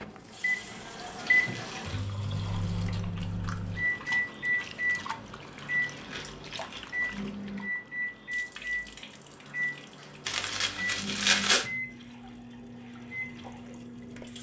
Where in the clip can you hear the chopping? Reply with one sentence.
The chopping can't be heard in this clip.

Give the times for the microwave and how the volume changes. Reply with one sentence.
You can hear the microwave from 0.0 to 14.3 s, getting quieter.